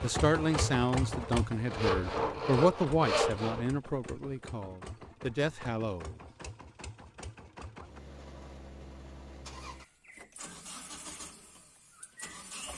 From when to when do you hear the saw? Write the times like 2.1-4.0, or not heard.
0.0-3.6.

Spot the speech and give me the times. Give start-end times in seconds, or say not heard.
0.0-6.2.